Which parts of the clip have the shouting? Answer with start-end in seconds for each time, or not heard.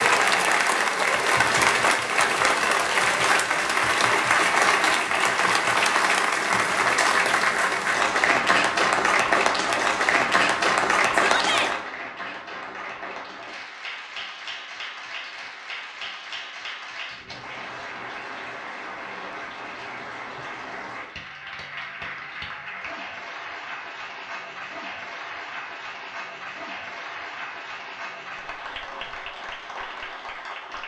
11.2-11.7.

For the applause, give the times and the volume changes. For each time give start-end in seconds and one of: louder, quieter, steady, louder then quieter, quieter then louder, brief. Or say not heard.
0.0-30.8 quieter.